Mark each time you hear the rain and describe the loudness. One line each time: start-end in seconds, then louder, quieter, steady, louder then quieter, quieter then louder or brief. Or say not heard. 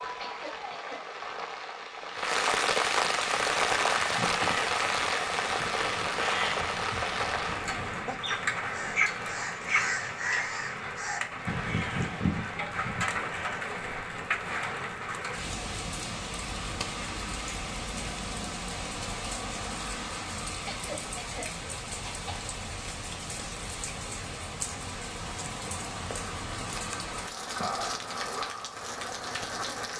0.0-29.9 quieter.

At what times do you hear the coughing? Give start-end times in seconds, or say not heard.
0.2-1.1, 20.6-22.3.